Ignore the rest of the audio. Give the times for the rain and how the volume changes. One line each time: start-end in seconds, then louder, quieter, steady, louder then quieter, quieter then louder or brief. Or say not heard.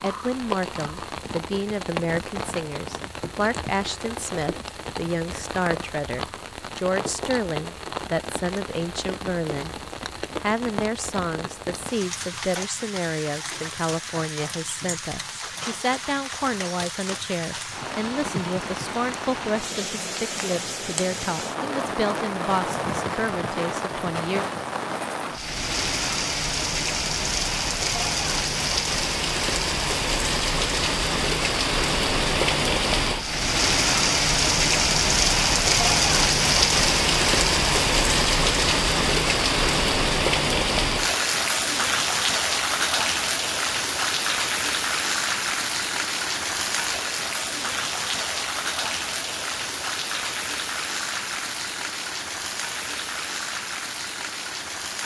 0.0-55.0 louder then quieter.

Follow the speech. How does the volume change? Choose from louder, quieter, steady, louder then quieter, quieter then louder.
steady.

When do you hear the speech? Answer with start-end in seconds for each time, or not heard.
0.0-9.8, 10.4-24.4.